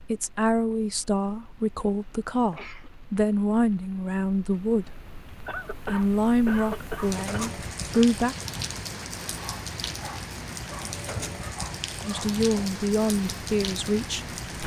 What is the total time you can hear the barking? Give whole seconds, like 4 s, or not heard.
3 s.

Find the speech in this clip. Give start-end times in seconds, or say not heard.
0.0-5.1, 5.8-8.3, 12.1-14.6.